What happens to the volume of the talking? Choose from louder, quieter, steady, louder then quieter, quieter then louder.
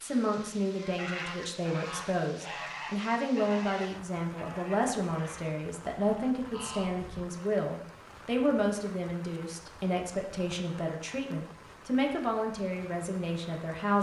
steady.